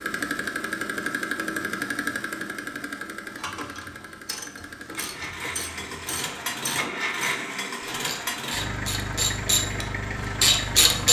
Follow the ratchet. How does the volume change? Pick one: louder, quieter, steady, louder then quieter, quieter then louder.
louder.